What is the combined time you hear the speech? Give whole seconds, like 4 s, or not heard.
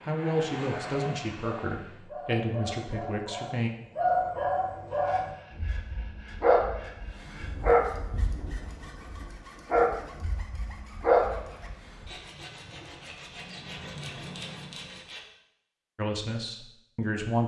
5 s.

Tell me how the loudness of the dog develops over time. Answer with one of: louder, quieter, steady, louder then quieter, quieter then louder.
louder.